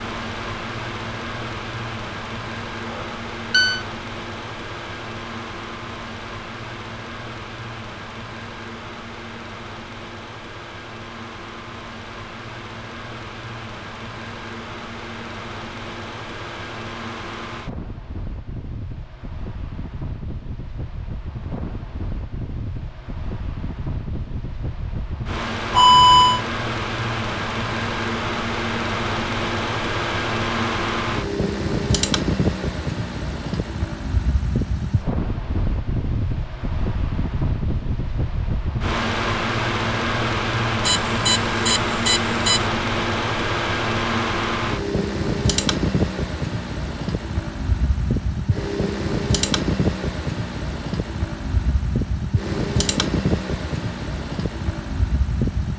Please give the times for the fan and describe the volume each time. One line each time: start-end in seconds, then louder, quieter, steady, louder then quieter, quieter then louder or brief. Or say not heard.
0.0-55.7 louder.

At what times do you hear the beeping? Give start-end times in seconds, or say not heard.
2.9-3.9, 25.7-26.4, 40.9-42.6.